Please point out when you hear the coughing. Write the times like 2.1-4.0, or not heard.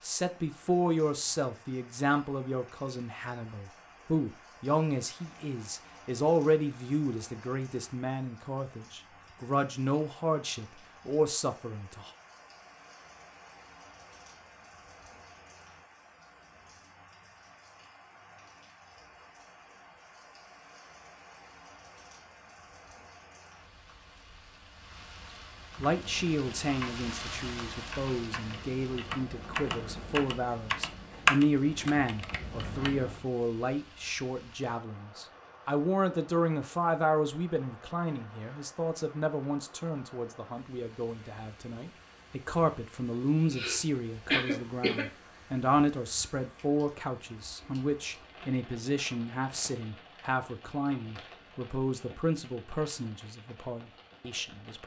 43.4-45.0.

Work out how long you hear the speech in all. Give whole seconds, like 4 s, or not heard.
41 s.